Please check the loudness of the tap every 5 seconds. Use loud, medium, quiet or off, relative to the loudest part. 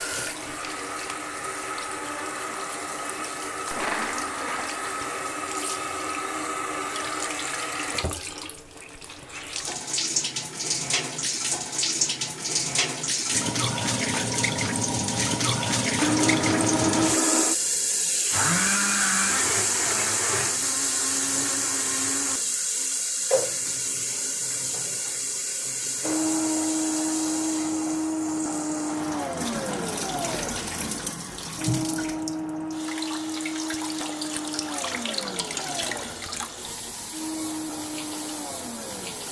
medium, medium, loud, loud, loud, medium, medium, medium.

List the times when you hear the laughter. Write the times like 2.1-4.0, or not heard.
not heard.